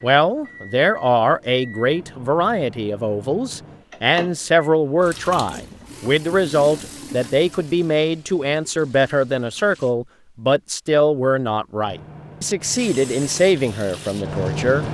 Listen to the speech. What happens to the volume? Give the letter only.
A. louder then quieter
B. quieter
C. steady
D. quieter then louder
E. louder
C.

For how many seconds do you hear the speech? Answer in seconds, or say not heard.
15 s.